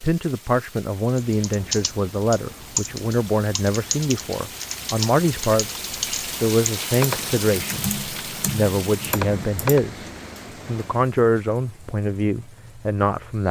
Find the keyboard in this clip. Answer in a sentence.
The keyboard can be heard from 1.1 to 9.8 s.